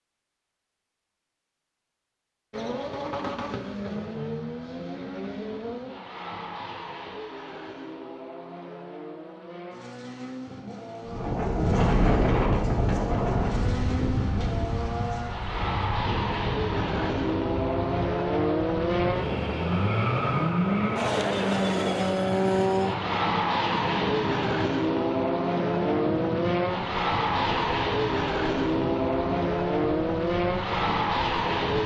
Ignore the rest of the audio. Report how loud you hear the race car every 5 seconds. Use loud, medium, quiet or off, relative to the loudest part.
medium, quiet, medium, loud, loud, loud, loud.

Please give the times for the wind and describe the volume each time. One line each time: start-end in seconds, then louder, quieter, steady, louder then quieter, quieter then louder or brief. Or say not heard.
11.1-31.8 quieter.